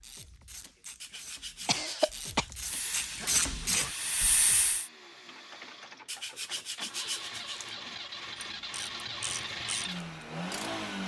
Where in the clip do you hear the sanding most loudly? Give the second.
7 s.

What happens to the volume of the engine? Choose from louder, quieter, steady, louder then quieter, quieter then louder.
louder.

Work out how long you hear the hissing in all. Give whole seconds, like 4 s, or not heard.
2 s.